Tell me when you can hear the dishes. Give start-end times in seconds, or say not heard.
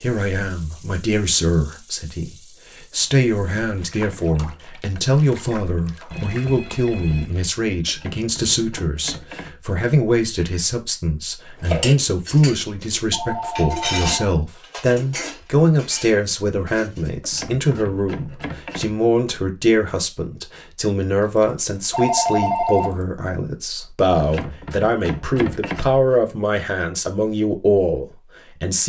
11.6-17.1.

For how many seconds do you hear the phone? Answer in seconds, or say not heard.
4 s.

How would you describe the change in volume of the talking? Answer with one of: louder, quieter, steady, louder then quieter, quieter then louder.
steady.